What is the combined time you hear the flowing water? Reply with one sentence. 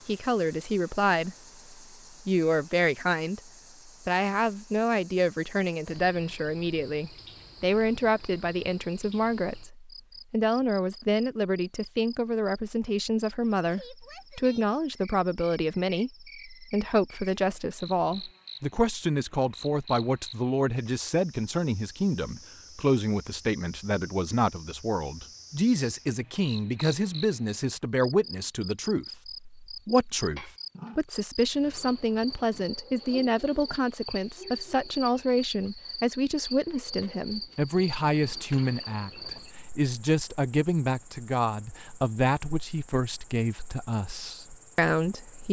You can't hear the flowing water here.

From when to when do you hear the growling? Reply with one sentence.
The growling can be heard from 30.4 to 31.0 s.